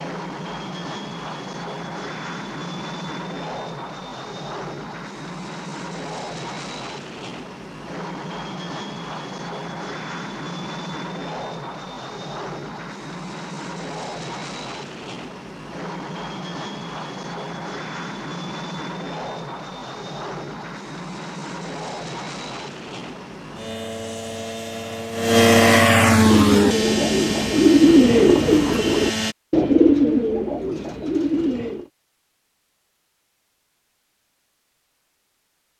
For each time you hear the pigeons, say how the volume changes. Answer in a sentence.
You can hear the pigeons from 26.1 to 31.9 s, getting louder then quieter.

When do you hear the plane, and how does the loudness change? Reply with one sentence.
You can hear the plane from 0.0 to 29.4 s, getting louder.